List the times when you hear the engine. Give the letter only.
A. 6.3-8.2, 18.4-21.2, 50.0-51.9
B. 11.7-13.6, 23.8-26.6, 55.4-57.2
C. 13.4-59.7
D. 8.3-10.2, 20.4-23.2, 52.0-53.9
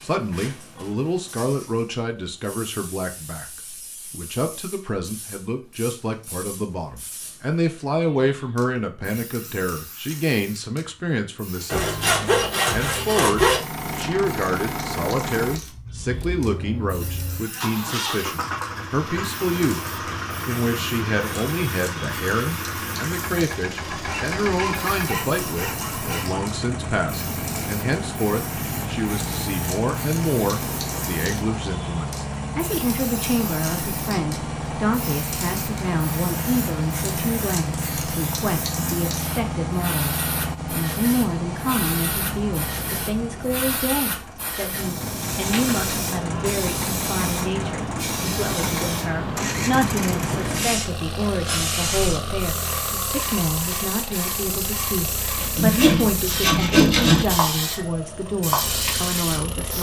C.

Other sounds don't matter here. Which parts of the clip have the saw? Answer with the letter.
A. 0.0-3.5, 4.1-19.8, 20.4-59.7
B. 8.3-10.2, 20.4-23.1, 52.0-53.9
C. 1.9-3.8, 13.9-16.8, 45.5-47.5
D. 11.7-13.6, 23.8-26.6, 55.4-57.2
D.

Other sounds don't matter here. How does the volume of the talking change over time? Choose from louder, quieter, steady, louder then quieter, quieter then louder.
steady.